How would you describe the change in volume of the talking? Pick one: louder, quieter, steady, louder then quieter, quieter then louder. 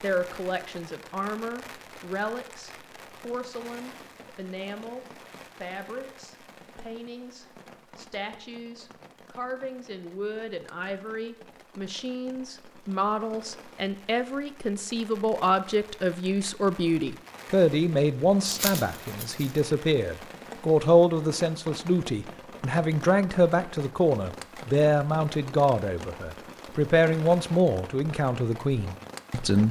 louder.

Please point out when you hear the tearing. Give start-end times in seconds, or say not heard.
18.4-19.6.